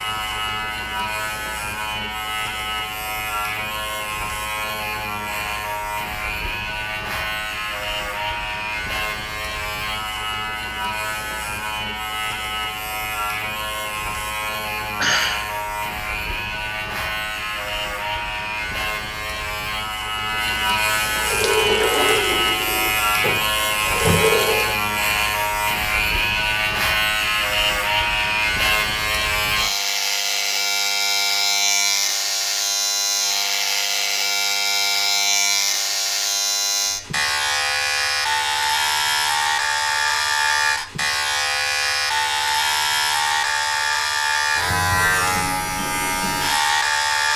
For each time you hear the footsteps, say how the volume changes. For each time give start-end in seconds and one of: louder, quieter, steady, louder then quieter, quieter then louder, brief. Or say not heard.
not heard.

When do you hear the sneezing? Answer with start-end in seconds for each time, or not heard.
15.0-15.4.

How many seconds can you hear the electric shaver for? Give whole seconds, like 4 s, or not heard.
47 s.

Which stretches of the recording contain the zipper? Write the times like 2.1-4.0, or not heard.
not heard.